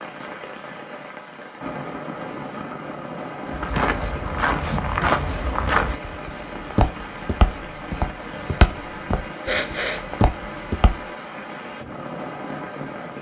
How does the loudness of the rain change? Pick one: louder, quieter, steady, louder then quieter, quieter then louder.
steady.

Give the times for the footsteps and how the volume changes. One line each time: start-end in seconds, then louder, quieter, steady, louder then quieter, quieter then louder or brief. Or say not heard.
3.5-10.9 steady.